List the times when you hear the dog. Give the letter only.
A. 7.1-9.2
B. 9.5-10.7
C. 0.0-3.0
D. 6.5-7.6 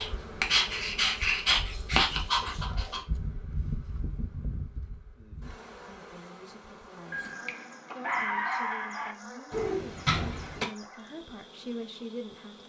C.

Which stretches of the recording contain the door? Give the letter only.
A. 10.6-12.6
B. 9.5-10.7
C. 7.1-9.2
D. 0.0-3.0
B.